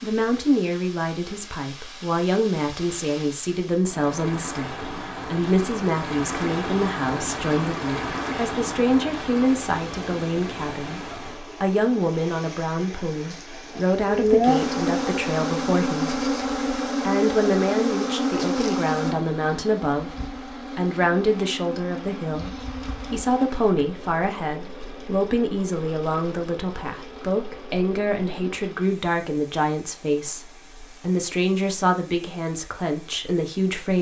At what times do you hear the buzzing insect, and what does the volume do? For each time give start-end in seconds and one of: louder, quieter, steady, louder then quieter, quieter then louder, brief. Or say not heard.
14.1-28.6 quieter.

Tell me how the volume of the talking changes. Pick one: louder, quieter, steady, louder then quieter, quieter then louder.
steady.